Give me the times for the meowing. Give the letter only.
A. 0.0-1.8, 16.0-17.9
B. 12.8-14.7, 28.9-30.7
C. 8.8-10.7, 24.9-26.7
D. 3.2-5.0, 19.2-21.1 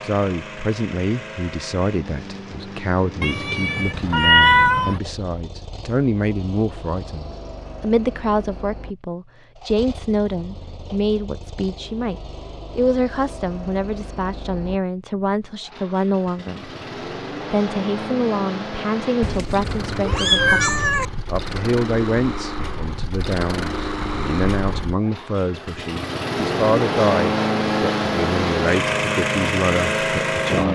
D.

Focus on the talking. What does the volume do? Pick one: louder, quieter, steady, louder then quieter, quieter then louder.
steady.